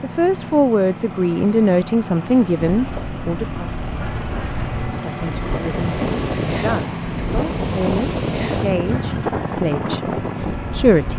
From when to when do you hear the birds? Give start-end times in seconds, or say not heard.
not heard.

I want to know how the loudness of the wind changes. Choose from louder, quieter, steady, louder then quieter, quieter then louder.
louder.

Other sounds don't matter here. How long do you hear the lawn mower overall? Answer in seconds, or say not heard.
11 s.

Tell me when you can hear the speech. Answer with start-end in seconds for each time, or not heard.
0.0-3.6, 4.8-11.1.